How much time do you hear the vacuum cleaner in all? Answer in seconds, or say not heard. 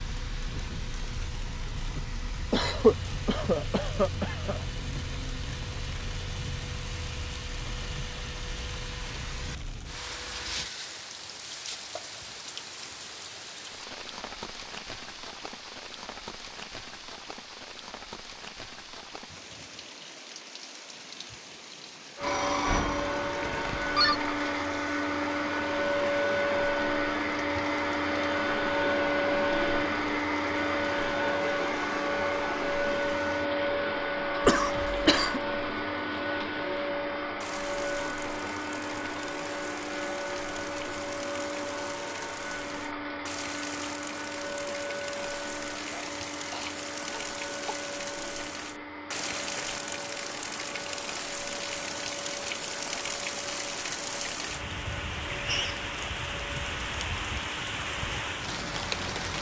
48 s.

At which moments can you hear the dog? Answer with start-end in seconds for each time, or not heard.
not heard.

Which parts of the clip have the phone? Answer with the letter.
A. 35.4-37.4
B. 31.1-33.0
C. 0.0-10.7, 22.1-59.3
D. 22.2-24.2
D.